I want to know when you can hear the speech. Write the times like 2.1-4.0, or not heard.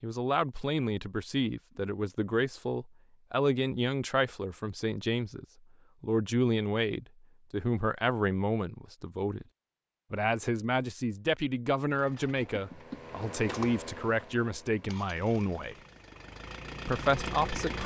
0.0-9.4, 10.1-15.8, 16.9-17.8.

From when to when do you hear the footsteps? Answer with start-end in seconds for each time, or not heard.
not heard.